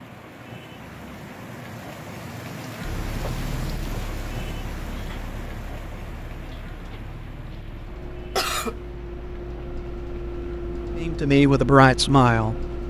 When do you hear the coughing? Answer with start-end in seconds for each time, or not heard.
8.3-8.8.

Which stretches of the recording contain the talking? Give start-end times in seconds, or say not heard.
10.9-12.6.